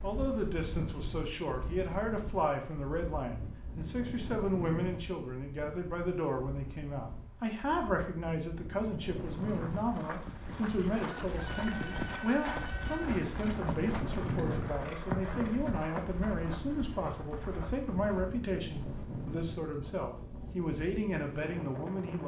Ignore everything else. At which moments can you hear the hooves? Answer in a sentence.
The hooves can be heard from 9.2 to 18.4 s.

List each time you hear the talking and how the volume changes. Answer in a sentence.
The talking can be heard from 0.0 to 22.2 s, at a steady volume.